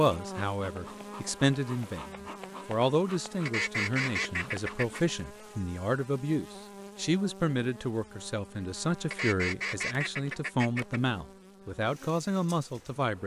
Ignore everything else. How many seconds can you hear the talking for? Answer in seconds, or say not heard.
13 s.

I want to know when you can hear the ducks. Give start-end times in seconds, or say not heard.
3.5-5.0, 9.1-11.0.